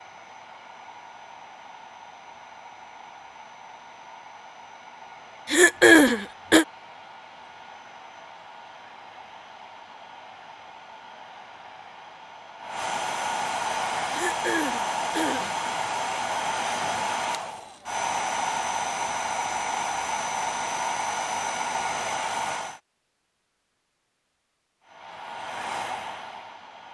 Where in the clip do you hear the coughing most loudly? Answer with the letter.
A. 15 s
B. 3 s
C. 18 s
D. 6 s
D.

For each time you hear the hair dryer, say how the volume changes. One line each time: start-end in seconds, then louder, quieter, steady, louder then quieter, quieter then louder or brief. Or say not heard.
0.0-22.8 louder
24.8-26.8 brief.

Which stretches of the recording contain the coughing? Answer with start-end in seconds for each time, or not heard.
5.5-6.7, 14.1-15.5.